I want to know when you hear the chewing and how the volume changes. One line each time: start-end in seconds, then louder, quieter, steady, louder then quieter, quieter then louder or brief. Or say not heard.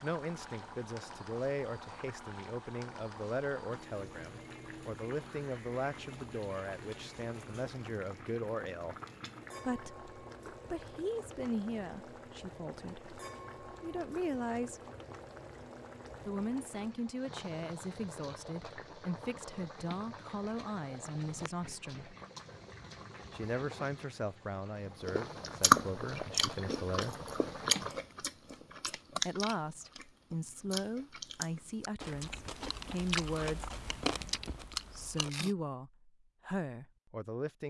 25.1-35.5 quieter then louder.